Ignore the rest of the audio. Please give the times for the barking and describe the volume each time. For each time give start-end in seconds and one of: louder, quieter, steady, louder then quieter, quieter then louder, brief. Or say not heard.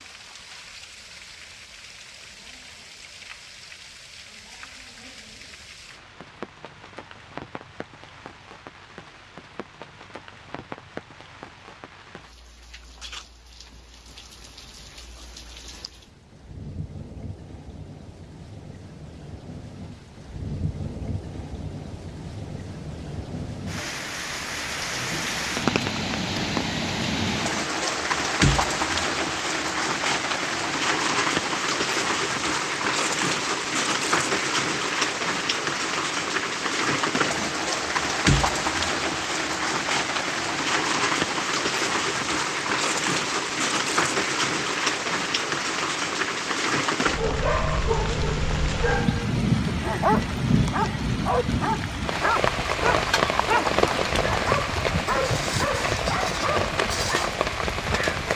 47.1-57.5 steady.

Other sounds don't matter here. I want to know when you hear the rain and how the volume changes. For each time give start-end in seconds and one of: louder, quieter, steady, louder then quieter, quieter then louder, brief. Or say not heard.
0.0-58.3 louder.